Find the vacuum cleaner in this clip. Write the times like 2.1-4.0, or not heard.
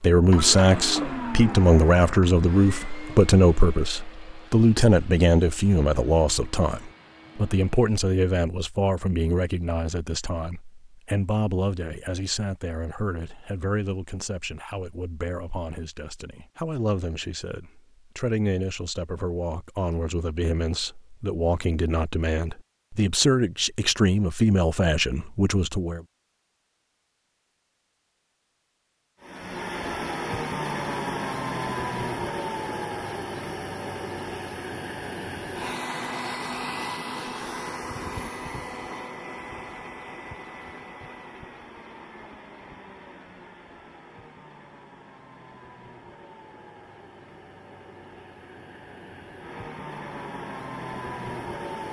0.1-8.0, 29.2-51.8.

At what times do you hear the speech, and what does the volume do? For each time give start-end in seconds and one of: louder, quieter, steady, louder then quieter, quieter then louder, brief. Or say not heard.
0.0-26.0 quieter then louder.